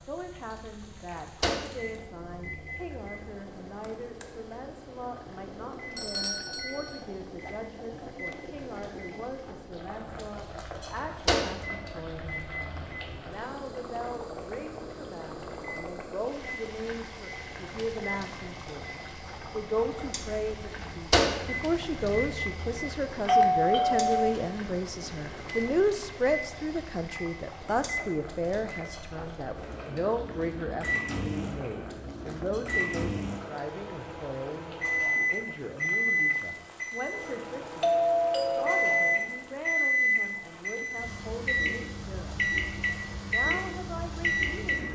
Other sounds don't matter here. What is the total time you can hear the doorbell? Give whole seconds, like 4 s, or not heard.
4 s.